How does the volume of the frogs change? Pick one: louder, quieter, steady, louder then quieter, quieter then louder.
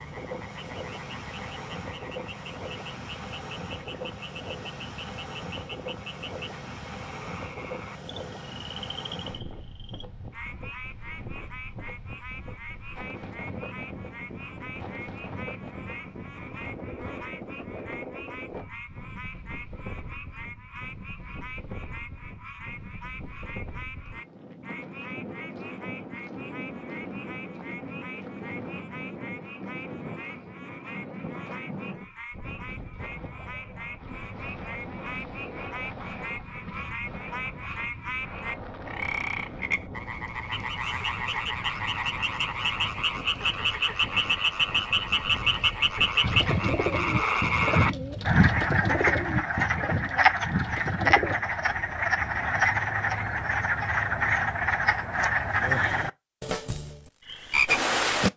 louder.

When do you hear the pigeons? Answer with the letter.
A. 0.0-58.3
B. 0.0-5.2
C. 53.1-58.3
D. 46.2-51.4
D.